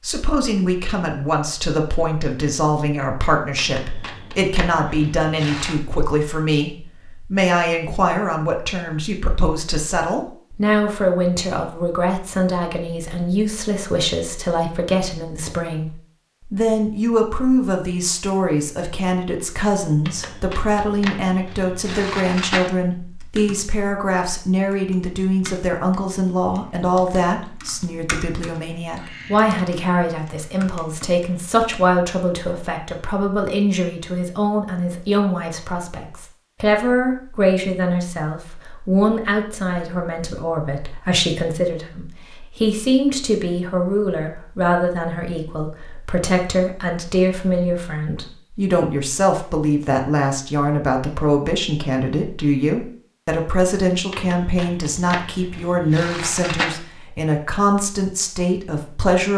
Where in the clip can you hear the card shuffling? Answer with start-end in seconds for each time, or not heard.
3.5-5.8, 20.1-22.7, 54.1-56.8.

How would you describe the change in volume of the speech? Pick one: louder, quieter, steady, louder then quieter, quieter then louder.
steady.